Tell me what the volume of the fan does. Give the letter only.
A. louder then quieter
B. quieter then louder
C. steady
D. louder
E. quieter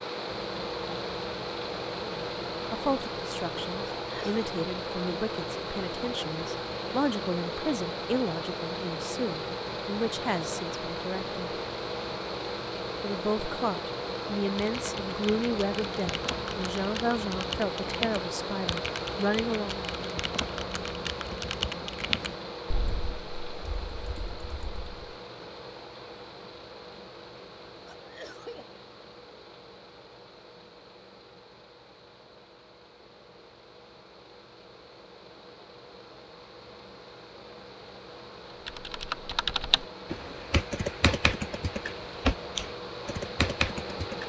B.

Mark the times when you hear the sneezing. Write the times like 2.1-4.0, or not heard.
4.0-4.5, 27.9-28.6.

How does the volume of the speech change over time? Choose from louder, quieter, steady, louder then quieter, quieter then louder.
steady.